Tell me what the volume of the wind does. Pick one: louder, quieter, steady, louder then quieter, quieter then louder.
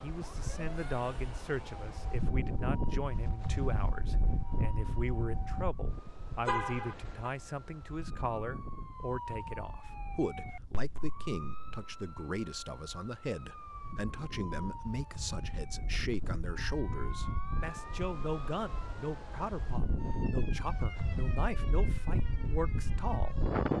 quieter then louder.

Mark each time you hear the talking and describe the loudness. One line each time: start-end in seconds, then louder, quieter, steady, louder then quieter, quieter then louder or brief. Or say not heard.
0.0-23.7 steady.